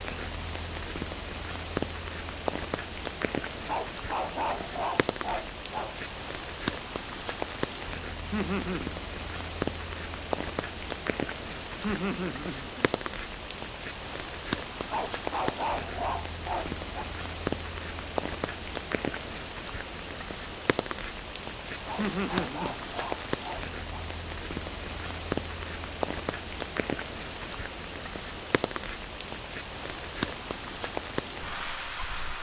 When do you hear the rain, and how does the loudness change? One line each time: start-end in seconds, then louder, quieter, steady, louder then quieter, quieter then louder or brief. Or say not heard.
0.0-32.3 steady.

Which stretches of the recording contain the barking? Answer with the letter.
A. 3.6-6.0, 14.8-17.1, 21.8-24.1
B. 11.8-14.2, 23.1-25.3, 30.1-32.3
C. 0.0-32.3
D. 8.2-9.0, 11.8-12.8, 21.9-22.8
A.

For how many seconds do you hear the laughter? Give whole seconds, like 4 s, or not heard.
3 s.